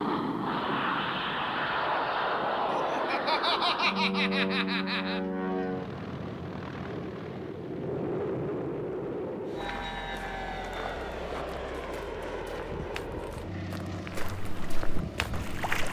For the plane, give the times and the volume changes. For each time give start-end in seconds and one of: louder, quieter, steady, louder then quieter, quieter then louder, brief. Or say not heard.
0.0-15.8 quieter.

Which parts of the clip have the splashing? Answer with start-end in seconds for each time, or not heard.
14.2-15.8.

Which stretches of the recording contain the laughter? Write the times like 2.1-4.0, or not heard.
2.6-5.2.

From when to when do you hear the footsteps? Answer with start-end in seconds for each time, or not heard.
9.4-15.7.